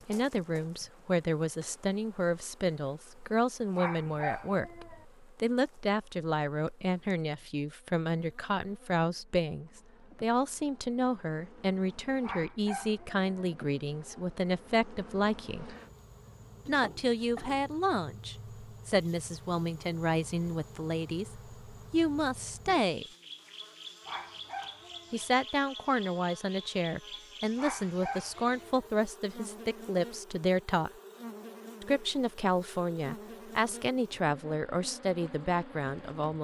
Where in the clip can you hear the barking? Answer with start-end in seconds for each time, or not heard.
3.8-5.0, 12.2-13.5, 24.1-25.4, 27.6-28.9.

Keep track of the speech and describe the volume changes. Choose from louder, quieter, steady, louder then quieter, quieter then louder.
steady.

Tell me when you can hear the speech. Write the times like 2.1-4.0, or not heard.
0.1-15.8, 16.6-23.1, 25.1-30.9, 31.8-36.3.